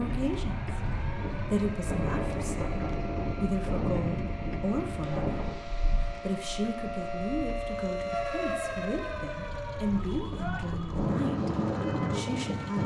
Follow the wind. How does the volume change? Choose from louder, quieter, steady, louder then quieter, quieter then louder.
quieter then louder.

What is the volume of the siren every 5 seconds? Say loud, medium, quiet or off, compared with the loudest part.
medium, loud, medium.